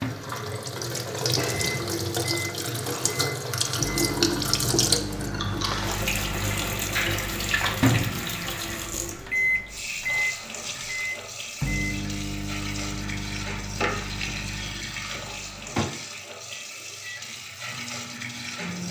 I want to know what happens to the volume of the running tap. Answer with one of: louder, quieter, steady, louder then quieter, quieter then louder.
quieter.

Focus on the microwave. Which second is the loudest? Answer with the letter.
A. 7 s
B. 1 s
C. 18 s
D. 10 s
D.